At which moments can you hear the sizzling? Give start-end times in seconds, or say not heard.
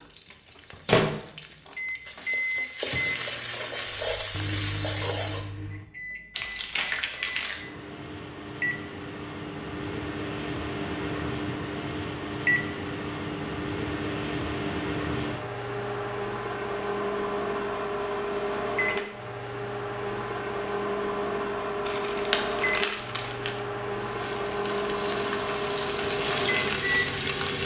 0.0-5.5, 23.9-27.6.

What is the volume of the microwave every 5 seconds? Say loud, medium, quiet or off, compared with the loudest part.
loud, medium, loud, loud, loud, loud.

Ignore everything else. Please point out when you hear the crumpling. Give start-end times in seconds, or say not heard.
6.3-7.7, 21.9-23.6.